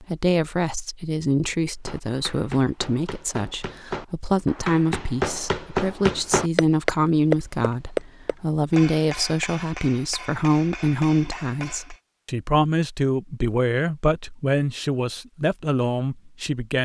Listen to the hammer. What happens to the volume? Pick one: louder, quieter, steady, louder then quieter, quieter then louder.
louder then quieter.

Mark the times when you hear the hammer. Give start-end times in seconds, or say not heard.
1.9-12.0.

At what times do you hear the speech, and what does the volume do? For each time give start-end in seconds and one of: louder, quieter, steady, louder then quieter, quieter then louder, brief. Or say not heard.
0.0-16.7 steady.